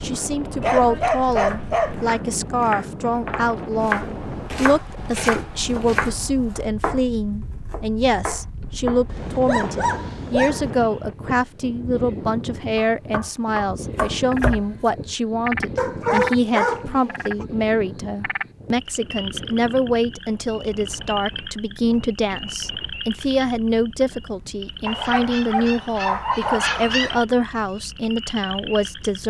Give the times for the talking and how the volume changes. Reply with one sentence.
You can hear the talking from 0.0 to 29.2 s, at a steady volume.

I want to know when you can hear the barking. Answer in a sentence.
You can hear the barking from 0.6 to 2.1 s, from 9.1 to 10.9 s, from 15.8 to 17.4 s and from 24.9 to 27.2 s.